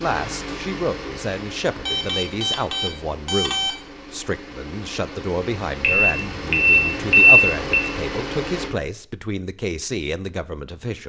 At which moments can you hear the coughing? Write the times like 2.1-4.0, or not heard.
not heard.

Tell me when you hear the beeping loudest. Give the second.
7 s.